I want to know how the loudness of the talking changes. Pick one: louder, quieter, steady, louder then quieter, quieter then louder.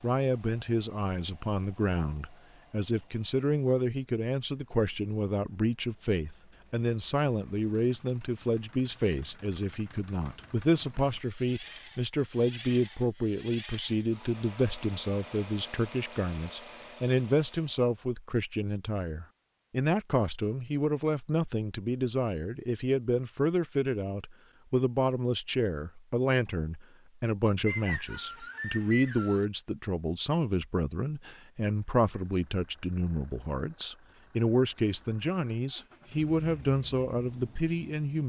steady.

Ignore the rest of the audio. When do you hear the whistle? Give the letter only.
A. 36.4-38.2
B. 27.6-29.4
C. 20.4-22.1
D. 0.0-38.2
B.